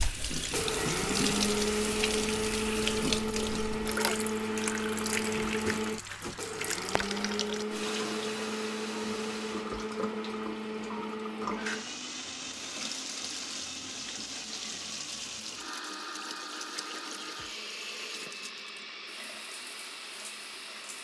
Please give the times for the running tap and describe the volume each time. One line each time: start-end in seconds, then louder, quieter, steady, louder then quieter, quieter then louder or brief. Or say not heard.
0.0-20.9 quieter.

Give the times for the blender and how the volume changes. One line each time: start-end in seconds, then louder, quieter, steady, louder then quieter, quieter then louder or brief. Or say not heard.
0.0-20.9 quieter.